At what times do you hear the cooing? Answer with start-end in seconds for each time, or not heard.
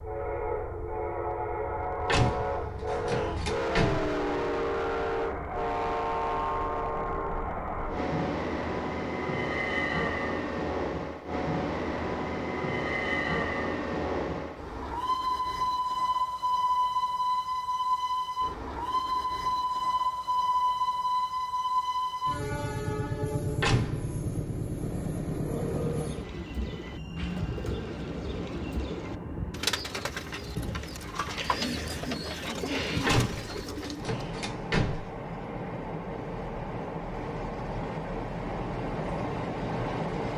25.6-34.2.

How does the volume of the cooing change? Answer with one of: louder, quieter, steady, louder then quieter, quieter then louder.
louder.